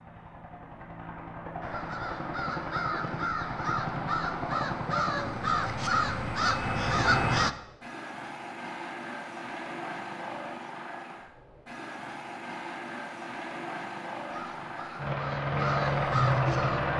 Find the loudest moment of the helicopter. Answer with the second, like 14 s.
16 s.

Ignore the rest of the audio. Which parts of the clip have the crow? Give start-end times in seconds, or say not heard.
1.6-7.5, 14.2-16.9.